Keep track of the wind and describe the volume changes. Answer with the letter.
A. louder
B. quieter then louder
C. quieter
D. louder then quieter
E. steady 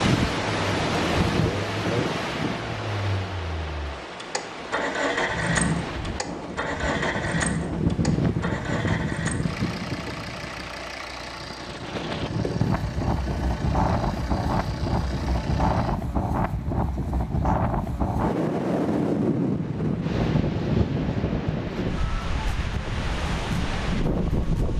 E.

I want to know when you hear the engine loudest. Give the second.
5 s.